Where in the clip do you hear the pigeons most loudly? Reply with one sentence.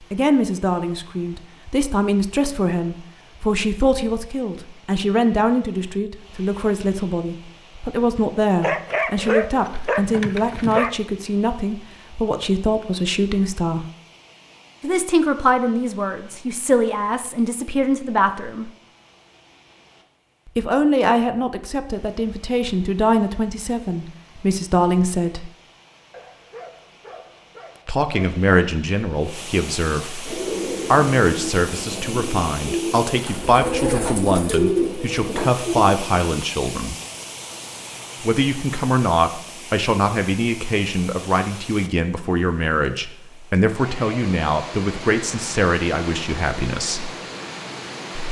The loudest moment of the pigeons is at 35 seconds.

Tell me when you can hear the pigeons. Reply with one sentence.
The pigeons can be heard from 30.2 to 36.2 s.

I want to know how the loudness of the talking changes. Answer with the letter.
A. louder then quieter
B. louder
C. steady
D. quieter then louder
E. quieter
C.